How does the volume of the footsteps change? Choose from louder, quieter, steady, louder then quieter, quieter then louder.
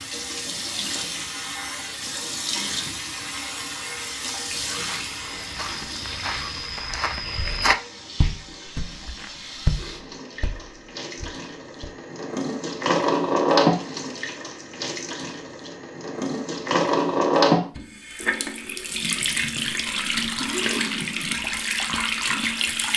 louder then quieter.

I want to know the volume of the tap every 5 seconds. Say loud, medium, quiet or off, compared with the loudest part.
medium, quiet, loud, loud, loud.